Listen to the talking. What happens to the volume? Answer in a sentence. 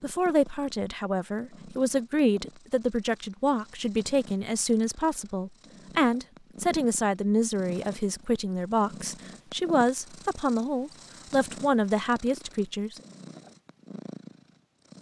The loudness of the talking stays about the same.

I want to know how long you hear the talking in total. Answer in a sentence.
You can hear the talking for 13 seconds altogether.